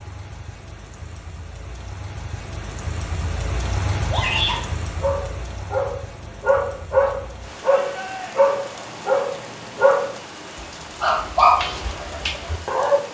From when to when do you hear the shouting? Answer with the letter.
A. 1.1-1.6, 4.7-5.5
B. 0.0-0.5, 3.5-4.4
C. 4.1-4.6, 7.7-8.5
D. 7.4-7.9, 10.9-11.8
C.